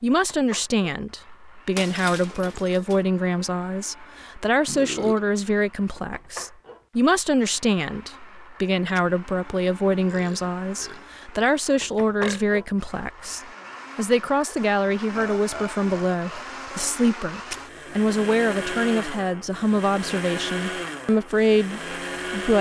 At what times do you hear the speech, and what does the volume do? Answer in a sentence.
The speech can be heard from 0.0 to 22.5 s, at a steady volume.